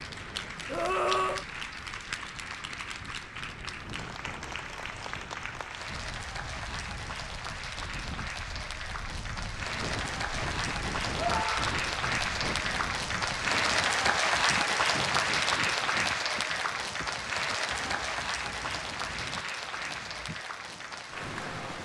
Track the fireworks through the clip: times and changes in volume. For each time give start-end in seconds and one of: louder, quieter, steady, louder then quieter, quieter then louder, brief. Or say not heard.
not heard.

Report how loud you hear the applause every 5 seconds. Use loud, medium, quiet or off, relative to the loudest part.
medium, medium, loud, loud, medium.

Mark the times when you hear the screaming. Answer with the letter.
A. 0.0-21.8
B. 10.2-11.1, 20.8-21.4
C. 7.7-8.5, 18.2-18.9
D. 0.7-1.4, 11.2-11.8
D.